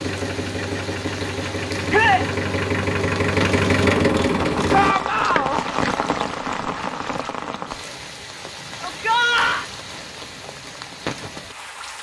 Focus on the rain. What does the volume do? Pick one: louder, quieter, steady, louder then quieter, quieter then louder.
louder then quieter.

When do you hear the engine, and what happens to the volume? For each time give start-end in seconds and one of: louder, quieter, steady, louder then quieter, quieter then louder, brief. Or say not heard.
0.0-5.0 louder.